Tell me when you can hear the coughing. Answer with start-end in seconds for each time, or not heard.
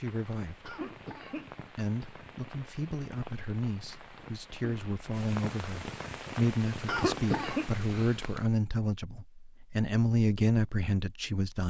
0.7-1.6, 6.8-7.7.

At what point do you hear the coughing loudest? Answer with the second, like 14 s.
7 s.